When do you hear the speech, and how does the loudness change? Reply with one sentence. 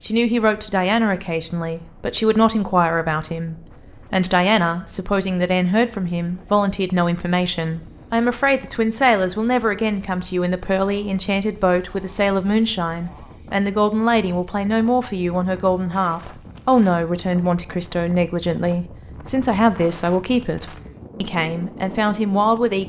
You can hear the speech from 0.1 to 22.8 s, at a steady volume.